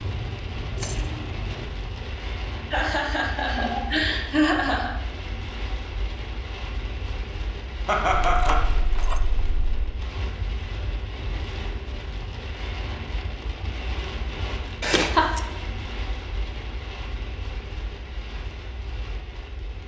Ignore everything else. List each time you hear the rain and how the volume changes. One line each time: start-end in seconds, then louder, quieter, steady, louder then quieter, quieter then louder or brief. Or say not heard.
0.0-19.8 steady.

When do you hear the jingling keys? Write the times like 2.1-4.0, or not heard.
0.7-1.6, 8.2-9.7, 14.8-15.4.